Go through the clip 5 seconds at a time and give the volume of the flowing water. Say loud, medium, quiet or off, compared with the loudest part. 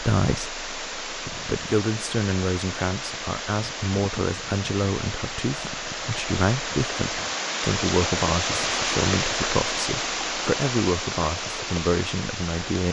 medium, loud, loud.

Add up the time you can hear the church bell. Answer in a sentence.
The church bell can't be heard in this clip.